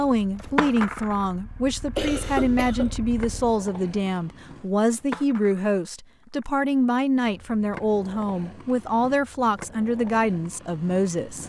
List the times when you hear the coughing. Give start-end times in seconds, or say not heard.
1.9-3.0.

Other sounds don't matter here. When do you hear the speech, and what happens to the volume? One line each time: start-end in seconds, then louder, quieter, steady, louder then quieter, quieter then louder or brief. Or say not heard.
0.0-11.4 steady.